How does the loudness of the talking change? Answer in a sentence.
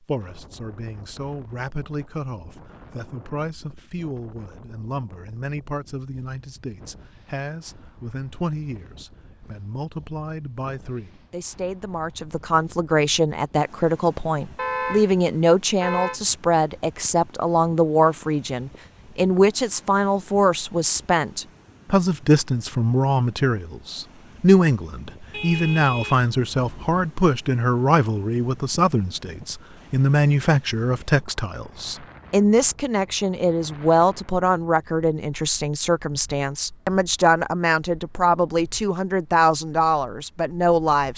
The volume of the talking goes up.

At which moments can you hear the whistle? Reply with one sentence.
The whistle can't be heard in this clip.